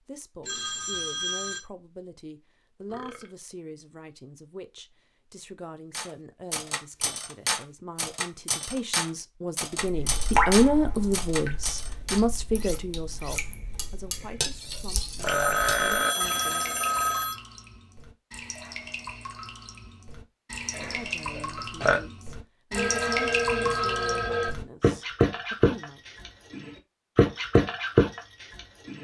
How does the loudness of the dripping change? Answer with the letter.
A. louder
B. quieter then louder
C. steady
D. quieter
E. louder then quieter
B.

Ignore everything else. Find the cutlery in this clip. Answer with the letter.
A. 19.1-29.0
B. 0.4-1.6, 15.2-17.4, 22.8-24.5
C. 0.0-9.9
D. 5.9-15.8
D.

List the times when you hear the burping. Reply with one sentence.
The burping can be heard from 2.9 to 3.4 s, from 14.2 to 16.1 s and from 20.8 to 22.0 s.